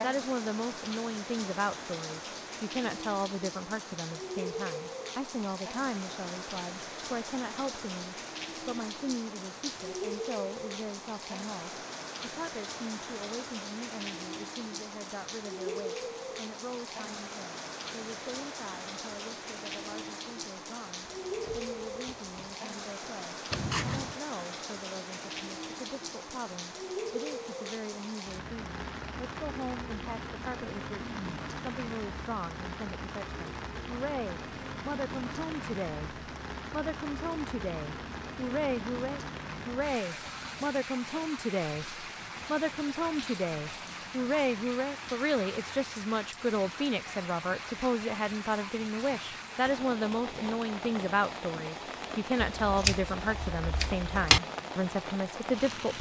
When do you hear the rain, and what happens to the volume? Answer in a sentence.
You can hear the rain from 0.0 to 55.9 s, at a steady volume.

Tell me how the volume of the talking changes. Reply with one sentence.
The volume of the talking goes down, then up.